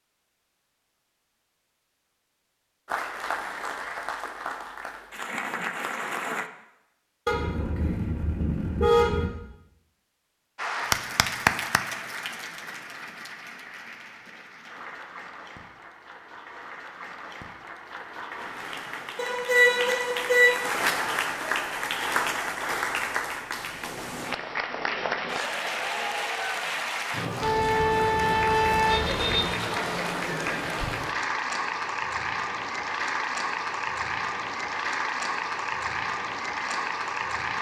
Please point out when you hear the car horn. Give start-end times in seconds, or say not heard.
7.2-9.2, 19.1-20.6, 27.4-29.4.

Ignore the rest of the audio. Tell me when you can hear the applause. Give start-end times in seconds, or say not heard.
2.9-6.5, 10.6-37.5.